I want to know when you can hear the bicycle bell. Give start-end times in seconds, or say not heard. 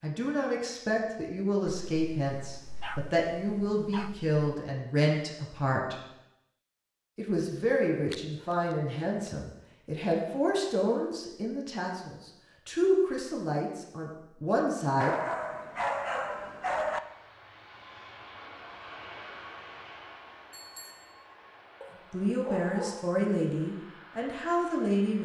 20.5-21.2.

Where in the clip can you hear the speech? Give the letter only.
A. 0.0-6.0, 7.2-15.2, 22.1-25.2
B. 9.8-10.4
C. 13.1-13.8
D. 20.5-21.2
A.